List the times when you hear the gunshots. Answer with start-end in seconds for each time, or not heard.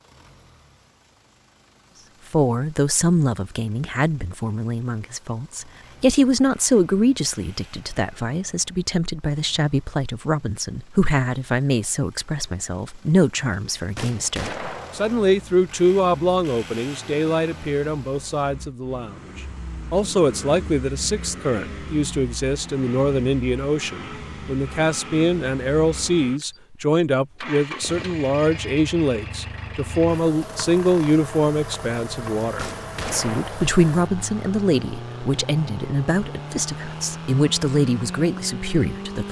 13.9-15.2, 32.5-33.8.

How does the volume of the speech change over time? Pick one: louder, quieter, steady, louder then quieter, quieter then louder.
steady.